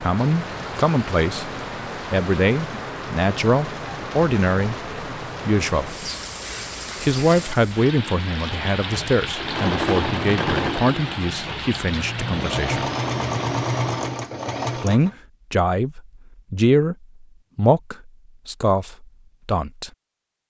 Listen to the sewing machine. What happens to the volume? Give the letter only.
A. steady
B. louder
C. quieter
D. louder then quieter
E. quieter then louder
E.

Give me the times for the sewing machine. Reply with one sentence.
You can hear the sewing machine from 9.3 to 15.1 s.